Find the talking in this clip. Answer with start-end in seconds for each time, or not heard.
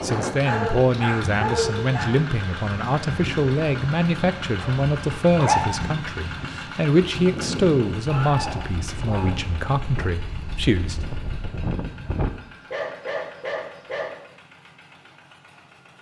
0.0-10.9.